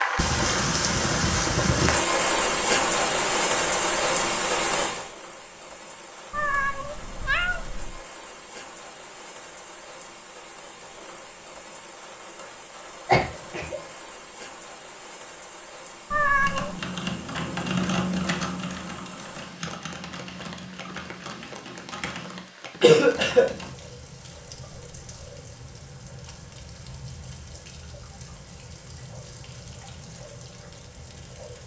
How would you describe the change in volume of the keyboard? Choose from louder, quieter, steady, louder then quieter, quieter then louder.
quieter.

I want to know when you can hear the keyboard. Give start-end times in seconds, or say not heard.
16.4-23.8.